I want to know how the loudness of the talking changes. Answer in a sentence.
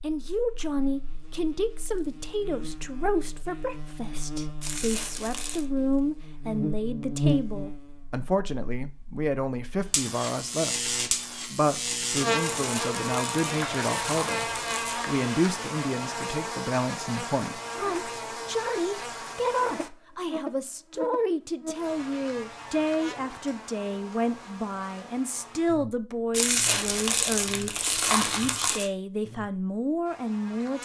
The loudness of the talking stays about the same.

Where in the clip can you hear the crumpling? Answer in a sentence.
The crumpling can be heard from 4.6 to 5.7 s, from 12.4 to 15.0 s and from 26.3 to 28.9 s.